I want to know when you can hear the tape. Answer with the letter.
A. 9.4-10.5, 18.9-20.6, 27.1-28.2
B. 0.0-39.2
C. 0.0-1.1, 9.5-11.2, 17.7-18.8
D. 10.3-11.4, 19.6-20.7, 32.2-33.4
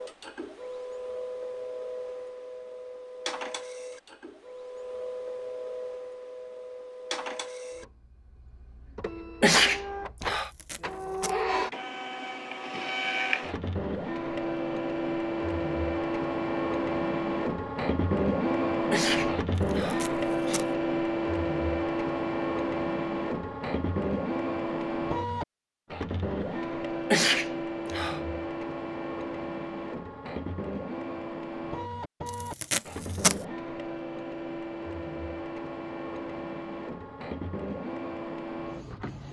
D.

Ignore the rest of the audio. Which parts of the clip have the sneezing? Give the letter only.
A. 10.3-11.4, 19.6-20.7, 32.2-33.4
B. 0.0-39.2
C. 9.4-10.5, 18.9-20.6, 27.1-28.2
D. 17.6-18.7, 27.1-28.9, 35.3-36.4
C.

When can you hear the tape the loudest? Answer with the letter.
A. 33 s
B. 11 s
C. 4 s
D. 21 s
A.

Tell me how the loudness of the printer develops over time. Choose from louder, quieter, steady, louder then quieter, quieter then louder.
louder then quieter.